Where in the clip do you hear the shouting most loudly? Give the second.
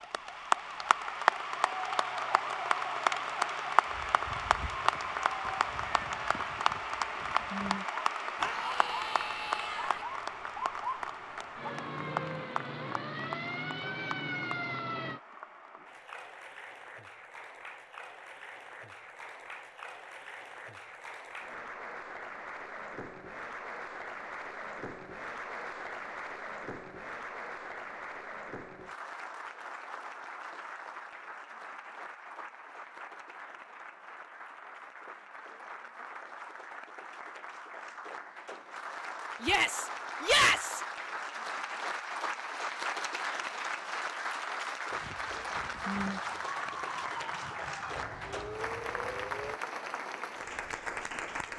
40 s.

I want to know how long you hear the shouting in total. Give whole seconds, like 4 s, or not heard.
3 s.